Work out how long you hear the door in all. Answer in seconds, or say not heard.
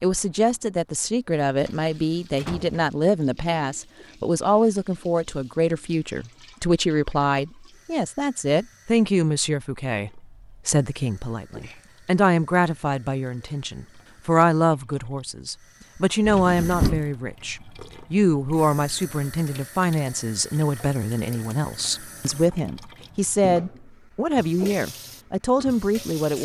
2 s.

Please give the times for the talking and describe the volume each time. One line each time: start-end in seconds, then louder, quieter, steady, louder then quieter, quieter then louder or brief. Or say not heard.
0.0-26.3 steady.